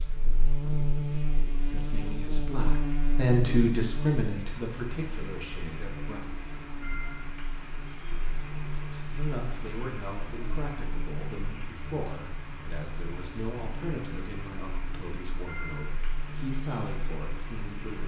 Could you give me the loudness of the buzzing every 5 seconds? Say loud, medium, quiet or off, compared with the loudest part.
loud, medium, medium, medium.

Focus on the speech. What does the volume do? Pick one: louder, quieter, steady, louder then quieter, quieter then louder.
quieter.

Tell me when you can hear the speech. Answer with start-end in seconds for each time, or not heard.
1.6-6.2, 8.8-18.0.